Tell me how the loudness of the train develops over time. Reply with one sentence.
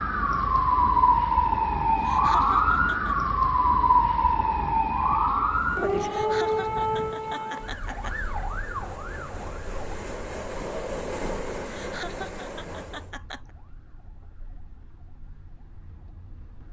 The volume of the train goes up.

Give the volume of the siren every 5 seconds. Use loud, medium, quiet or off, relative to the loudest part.
loud, medium, quiet, quiet.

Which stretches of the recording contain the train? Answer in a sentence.
You can hear the train from 5.4 to 13.2 s.